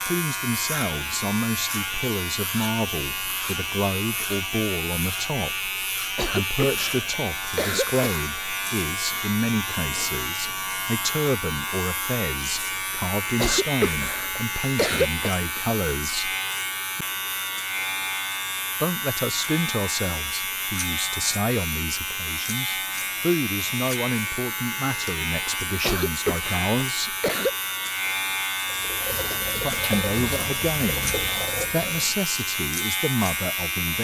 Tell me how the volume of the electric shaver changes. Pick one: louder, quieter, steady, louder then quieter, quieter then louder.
steady.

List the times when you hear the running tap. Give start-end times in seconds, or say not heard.
28.6-32.1.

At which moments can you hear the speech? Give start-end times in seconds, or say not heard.
0.1-16.4, 18.8-27.1, 29.6-34.0.